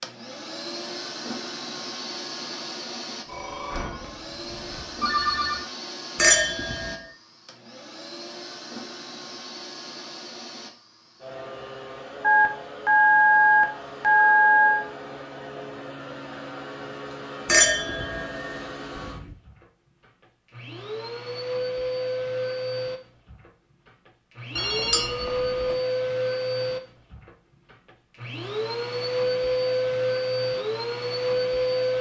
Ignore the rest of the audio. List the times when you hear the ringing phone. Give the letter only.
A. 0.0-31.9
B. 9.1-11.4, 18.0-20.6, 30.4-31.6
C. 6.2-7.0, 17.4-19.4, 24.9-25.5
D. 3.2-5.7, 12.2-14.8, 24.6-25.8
D.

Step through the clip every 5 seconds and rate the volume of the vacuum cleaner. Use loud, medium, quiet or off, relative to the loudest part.
medium, quiet, quiet, quiet, medium, loud, loud.